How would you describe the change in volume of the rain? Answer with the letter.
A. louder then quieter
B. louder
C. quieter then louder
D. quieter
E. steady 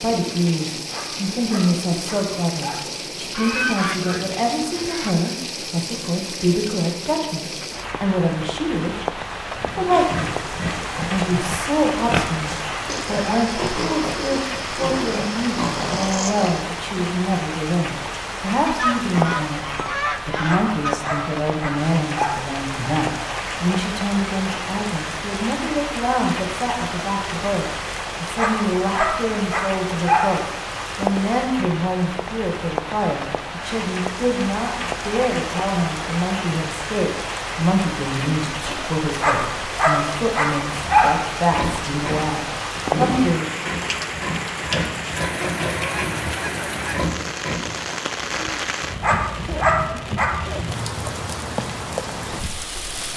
E.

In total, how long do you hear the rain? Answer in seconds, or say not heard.
53 s.